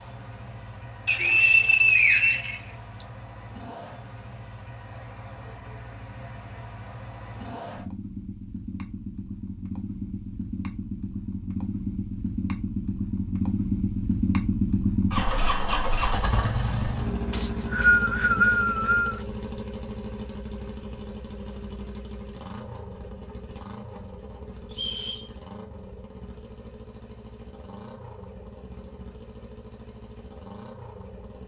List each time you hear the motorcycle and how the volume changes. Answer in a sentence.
You can hear the motorcycle from 0.0 to 31.4 s, getting louder then quieter.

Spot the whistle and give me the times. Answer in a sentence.
You can hear the whistle from 1.1 to 3.0 s, from 17.3 to 19.2 s and from 24.7 to 25.3 s.